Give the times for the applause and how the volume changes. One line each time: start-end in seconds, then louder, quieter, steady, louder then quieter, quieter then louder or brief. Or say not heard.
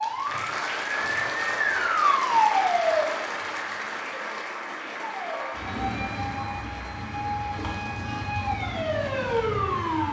0.0-10.0 quieter.